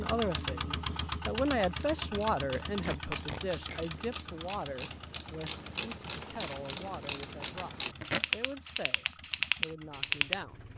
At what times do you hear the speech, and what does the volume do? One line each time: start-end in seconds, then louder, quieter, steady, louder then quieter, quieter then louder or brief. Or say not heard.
0.0-10.7 quieter.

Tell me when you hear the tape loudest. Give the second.
8 s.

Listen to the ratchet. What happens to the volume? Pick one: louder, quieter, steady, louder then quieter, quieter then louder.
louder.